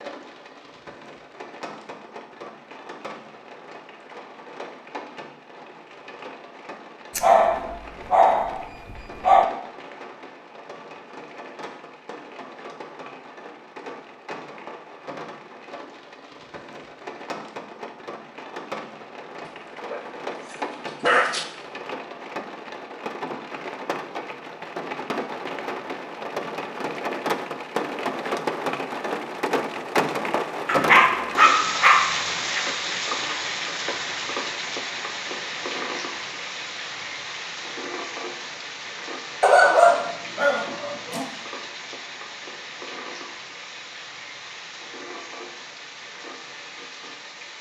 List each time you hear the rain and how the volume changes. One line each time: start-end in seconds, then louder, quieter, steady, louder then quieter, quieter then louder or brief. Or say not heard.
0.0-47.5 louder then quieter.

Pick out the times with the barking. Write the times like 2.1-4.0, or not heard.
7.2-9.4, 19.4-21.4, 30.6-32.6, 39.4-41.2.